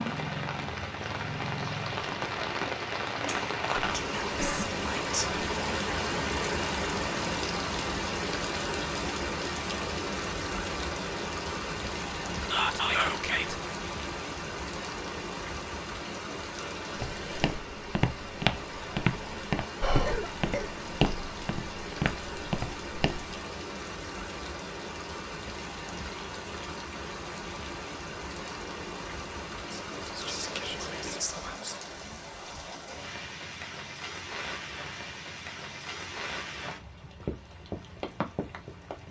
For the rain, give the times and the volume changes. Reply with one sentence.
You can hear the rain from 0.0 to 39.0 s, getting quieter.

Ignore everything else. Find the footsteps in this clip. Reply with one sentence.
The footsteps can be heard from 16.9 to 23.4 s.